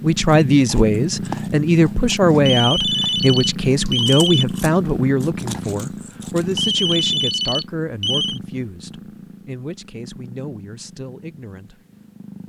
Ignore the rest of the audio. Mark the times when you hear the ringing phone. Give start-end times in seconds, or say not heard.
2.5-4.5, 6.5-8.4.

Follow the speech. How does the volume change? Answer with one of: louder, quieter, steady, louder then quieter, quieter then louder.
quieter.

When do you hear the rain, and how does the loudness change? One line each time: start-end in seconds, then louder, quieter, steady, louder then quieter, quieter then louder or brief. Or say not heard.
not heard.